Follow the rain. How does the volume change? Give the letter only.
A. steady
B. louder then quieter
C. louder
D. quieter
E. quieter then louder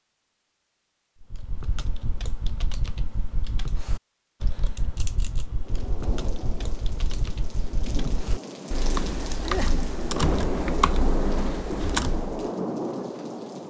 C.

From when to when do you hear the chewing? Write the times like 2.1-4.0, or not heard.
not heard.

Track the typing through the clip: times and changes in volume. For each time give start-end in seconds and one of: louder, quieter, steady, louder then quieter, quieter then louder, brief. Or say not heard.
1.2-12.5 louder.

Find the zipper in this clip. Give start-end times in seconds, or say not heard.
not heard.